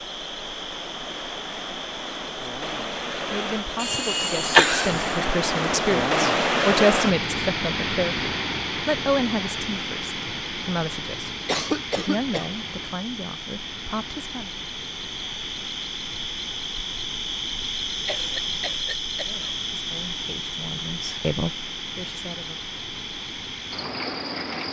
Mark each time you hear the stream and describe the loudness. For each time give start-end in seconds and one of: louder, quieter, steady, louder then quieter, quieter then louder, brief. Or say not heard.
0.0-24.6 louder then quieter.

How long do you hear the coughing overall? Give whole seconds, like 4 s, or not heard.
4 s.